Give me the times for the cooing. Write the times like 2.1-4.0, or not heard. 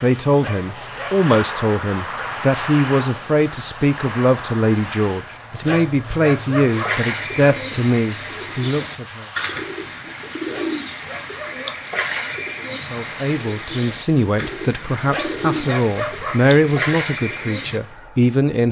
6.7-17.8.